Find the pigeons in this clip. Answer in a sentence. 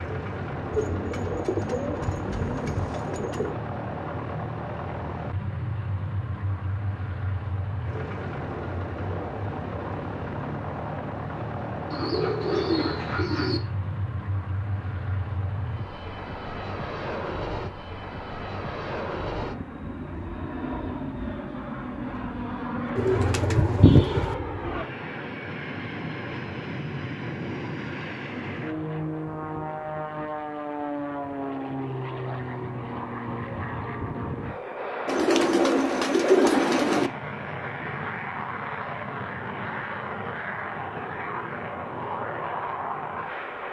The pigeons can be heard from 0.7 to 3.5 s, from 11.9 to 13.6 s, from 22.9 to 24.4 s and from 35.0 to 37.1 s.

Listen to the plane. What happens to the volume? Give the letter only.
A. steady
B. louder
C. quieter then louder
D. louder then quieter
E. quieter
A.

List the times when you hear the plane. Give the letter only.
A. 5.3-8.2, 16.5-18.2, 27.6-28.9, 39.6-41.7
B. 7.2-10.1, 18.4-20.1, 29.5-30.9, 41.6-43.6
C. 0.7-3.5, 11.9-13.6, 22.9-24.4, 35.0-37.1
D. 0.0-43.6
D.